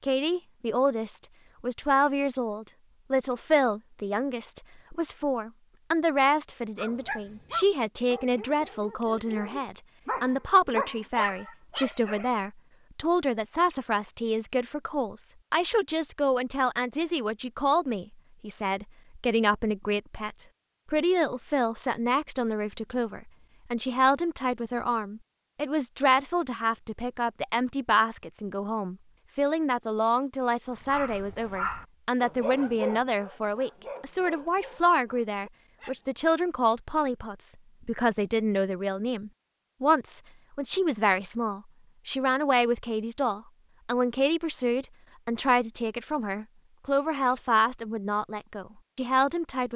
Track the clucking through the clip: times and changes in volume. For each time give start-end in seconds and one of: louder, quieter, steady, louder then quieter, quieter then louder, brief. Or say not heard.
not heard.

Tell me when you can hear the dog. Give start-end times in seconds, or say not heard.
6.8-12.3, 30.8-36.0.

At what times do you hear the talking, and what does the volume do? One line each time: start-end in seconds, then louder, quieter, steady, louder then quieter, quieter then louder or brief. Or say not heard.
0.0-49.7 steady.